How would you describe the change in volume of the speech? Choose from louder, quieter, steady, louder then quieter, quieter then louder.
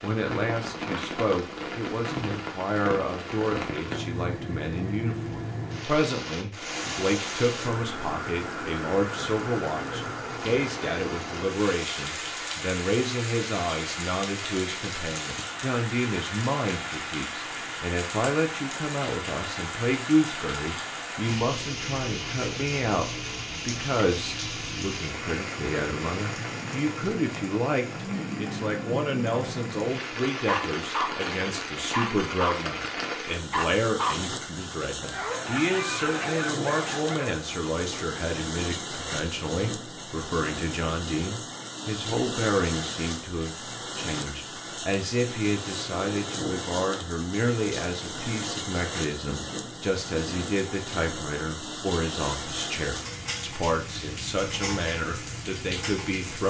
steady.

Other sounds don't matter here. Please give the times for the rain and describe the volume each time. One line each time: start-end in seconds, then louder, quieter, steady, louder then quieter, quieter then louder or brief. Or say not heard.
0.0-56.4 steady.